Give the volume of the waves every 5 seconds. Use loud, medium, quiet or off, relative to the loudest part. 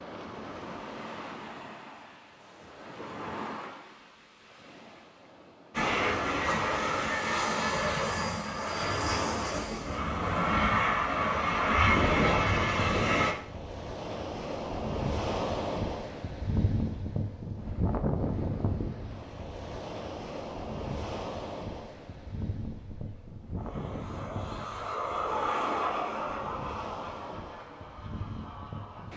medium, medium, loud, loud, medium, medium.